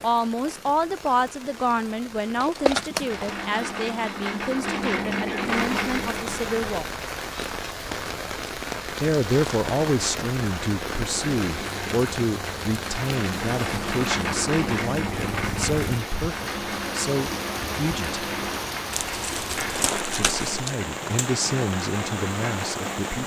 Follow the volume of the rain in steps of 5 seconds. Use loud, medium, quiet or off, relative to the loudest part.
medium, loud, loud, loud, loud.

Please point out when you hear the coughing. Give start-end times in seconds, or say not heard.
not heard.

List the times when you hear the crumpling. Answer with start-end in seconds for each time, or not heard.
2.4-3.4, 9.1-9.6, 18.9-20.8.